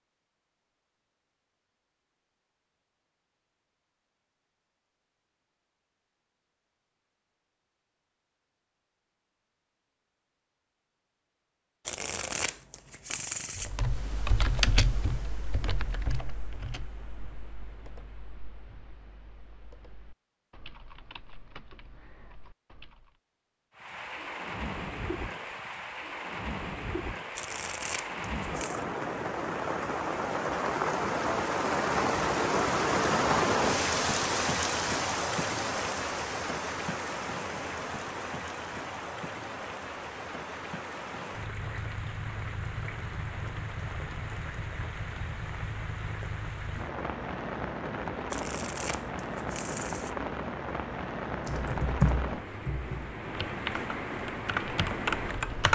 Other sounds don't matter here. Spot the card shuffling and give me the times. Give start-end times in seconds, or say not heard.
11.8-13.7, 27.4-28.9, 48.3-50.1.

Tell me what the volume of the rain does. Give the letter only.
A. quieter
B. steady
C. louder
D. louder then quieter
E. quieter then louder
D.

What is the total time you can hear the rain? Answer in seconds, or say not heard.
32 s.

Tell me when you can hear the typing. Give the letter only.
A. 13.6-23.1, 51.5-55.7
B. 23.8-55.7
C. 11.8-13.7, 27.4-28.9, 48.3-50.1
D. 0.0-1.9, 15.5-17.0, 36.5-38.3
A.